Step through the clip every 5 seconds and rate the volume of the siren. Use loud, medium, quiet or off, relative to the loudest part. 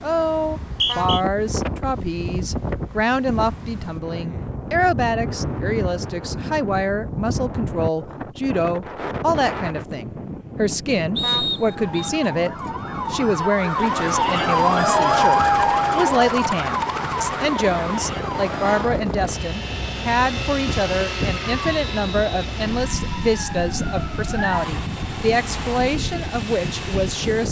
off, off, loud, loud, medium, off.